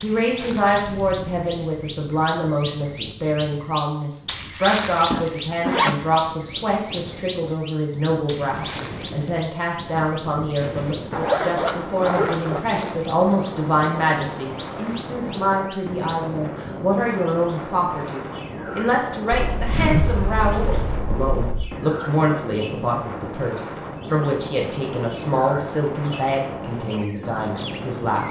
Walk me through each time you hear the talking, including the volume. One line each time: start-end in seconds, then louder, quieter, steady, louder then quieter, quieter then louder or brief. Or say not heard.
0.0-28.2 steady.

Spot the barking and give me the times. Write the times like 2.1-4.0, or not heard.
not heard.